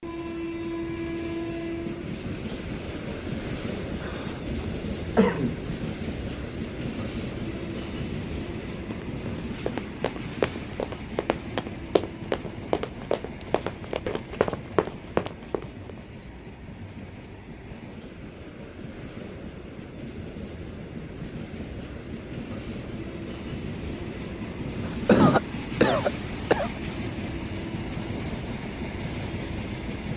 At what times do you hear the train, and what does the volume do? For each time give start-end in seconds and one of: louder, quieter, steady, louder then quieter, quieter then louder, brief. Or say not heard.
0.0-30.1 quieter then louder.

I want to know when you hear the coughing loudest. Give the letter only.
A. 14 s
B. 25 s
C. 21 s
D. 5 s
B.